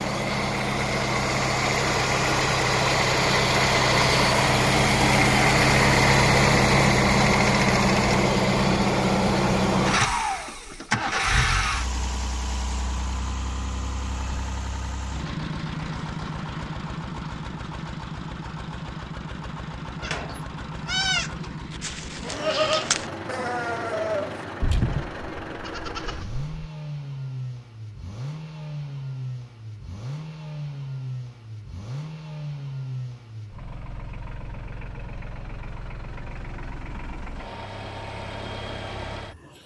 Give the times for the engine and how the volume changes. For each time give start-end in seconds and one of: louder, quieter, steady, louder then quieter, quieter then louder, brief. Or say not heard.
0.0-39.6 quieter.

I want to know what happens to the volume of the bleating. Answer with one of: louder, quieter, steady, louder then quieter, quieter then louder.
quieter.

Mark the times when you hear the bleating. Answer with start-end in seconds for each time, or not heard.
20.0-26.4.